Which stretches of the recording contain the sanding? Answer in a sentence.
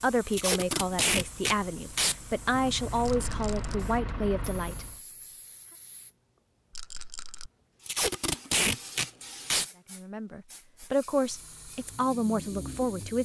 The sanding can't be heard in this clip.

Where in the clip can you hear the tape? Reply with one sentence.
You can hear the tape from 0.3 to 2.1 s and from 7.8 to 9.7 s.